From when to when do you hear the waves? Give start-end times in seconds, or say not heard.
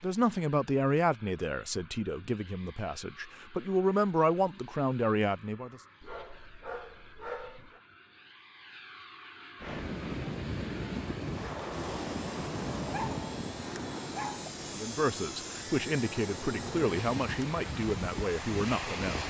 9.6-19.2.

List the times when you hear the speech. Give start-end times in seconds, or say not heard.
0.0-5.8, 14.8-19.2.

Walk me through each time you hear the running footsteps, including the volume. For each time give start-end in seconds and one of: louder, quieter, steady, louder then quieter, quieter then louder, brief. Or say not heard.
not heard.